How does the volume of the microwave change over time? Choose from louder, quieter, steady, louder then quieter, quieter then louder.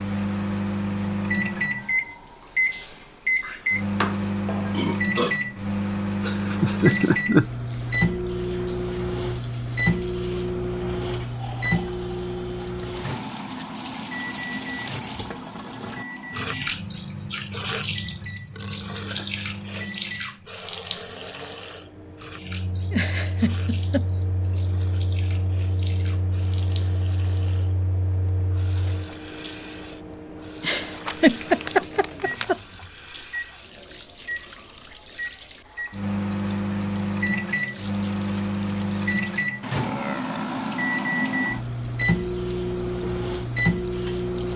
quieter then louder.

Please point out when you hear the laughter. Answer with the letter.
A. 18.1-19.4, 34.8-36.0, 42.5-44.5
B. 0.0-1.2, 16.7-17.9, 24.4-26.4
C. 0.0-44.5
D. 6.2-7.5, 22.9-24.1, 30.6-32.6
D.